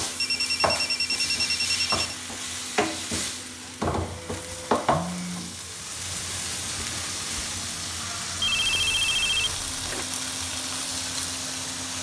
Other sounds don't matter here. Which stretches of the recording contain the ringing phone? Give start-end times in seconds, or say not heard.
0.2-2.1, 4.8-5.5, 8.4-10.1.